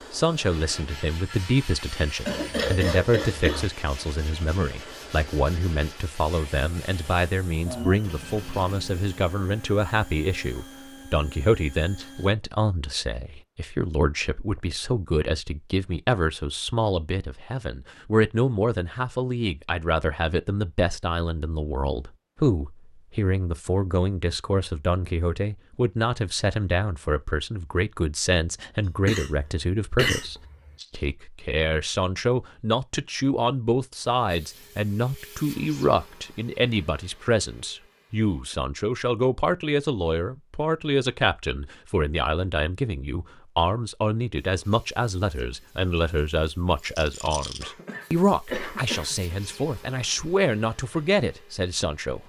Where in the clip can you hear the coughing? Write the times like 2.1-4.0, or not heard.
2.2-3.7, 28.9-30.7, 47.6-49.4.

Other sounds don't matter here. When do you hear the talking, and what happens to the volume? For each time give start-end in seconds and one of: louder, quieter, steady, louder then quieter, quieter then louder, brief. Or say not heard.
0.1-52.2 steady.